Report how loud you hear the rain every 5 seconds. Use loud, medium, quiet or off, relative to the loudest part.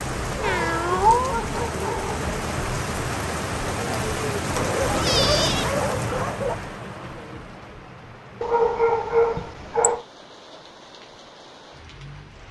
loud, loud, quiet.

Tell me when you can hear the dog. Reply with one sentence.
The dog can be heard from 0.3 to 2.2 s, from 4.5 to 6.5 s and from 8.4 to 10.1 s.